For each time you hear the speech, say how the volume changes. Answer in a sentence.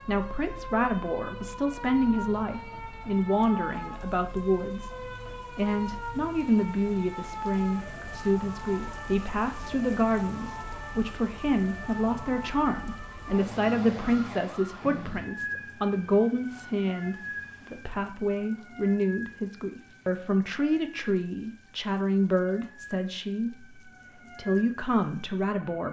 You can hear the speech from 0.1 to 25.8 s, at a steady volume.